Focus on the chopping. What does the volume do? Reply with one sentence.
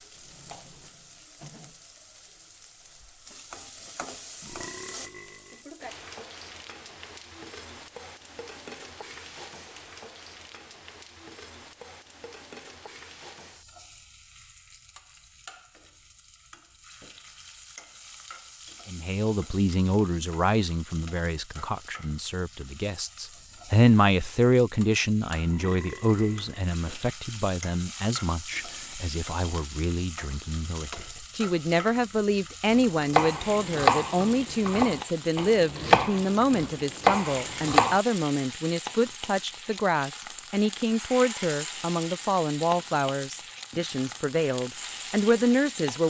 The loudness of the chopping goes down, then up.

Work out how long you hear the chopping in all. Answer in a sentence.
You can hear the chopping for 5 seconds altogether.